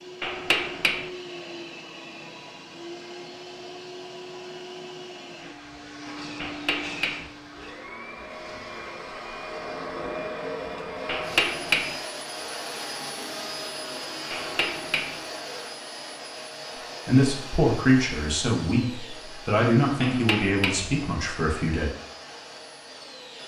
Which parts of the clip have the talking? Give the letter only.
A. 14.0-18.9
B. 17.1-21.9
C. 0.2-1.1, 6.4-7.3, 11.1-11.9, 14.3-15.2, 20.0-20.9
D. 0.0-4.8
B.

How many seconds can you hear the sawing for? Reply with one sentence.
You can't hear the sawing here.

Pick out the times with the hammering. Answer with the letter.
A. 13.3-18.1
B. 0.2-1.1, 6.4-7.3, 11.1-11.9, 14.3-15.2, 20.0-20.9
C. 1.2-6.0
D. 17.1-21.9
B.